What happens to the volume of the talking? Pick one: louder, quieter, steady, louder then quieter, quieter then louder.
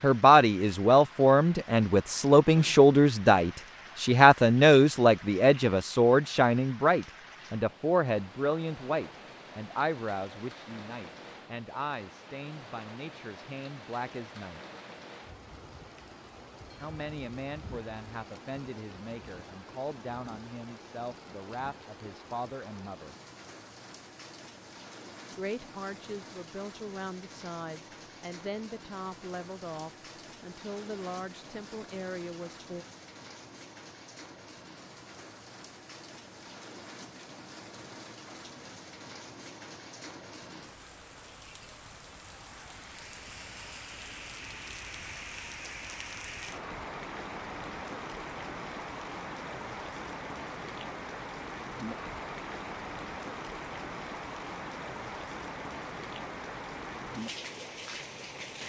quieter.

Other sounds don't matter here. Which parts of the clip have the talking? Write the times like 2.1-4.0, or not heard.
0.0-14.6, 16.8-23.1, 25.4-32.9.